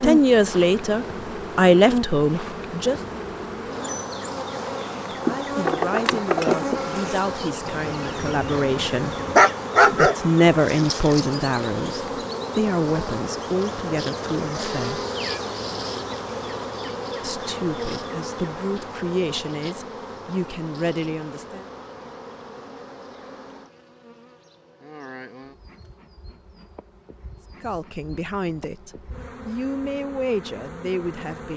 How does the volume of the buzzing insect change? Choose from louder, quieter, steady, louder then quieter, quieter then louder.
quieter.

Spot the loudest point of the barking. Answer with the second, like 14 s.
10 s.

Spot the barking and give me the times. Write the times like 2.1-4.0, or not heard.
7.7-10.2.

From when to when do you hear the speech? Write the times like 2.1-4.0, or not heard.
0.0-3.0, 5.2-9.2, 9.9-15.1, 17.2-21.6, 27.6-31.5.